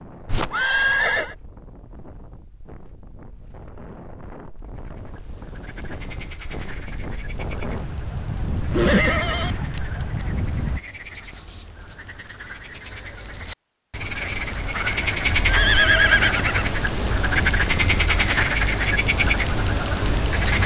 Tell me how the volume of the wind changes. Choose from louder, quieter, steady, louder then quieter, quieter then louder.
louder.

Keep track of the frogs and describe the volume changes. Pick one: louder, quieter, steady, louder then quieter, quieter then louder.
louder.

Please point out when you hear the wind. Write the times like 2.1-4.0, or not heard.
0.0-10.8.